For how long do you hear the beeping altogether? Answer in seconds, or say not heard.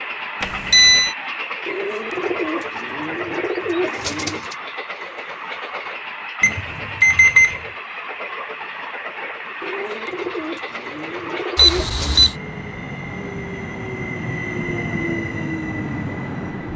3 s.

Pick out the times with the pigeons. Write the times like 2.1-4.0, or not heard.
1.6-4.5, 9.6-12.3.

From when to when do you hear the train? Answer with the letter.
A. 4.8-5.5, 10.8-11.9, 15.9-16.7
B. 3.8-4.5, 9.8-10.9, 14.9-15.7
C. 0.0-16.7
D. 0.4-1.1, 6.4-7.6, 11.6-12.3
C.